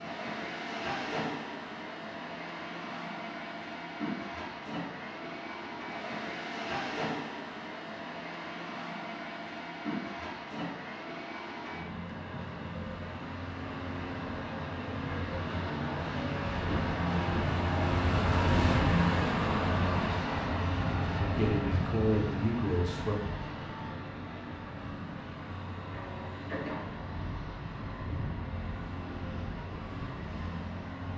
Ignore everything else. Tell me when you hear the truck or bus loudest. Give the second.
19 s.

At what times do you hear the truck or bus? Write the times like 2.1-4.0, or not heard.
0.0-31.1.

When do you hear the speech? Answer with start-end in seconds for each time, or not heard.
21.2-23.1.